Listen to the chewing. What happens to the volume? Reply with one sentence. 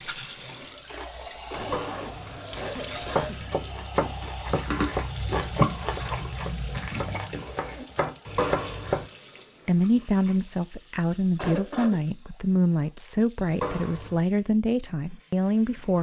The volume of the chewing goes up, then down.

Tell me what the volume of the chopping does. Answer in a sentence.
The loudness of the chopping goes down, then up.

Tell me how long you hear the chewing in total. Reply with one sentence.
The chewing can be heard for 10 seconds in total.